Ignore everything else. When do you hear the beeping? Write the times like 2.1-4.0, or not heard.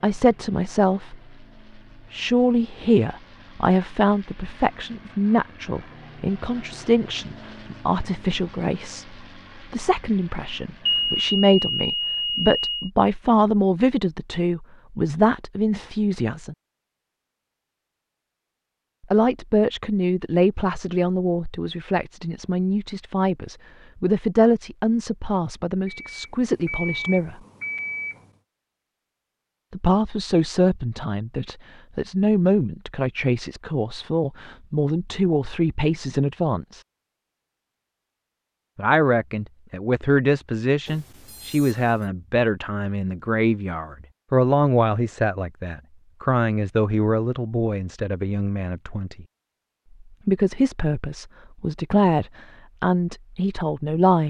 10.8-12.9, 25.9-28.3, 40.9-42.0.